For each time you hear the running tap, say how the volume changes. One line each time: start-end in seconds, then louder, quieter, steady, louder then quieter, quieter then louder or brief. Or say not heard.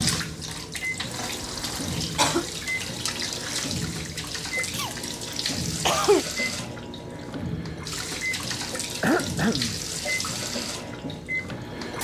0.0-12.0 steady.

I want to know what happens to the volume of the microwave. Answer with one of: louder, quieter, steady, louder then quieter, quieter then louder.
steady.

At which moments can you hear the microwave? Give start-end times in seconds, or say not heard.
0.0-12.0.